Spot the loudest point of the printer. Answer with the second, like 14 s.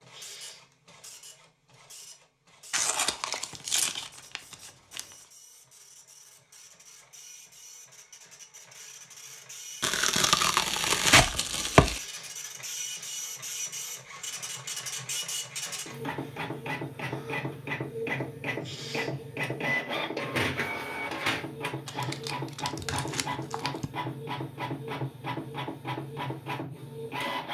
20 s.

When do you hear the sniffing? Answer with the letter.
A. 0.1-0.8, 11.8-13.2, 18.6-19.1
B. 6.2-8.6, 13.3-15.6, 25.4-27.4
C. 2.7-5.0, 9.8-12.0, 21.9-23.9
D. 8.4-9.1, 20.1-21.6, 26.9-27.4
A.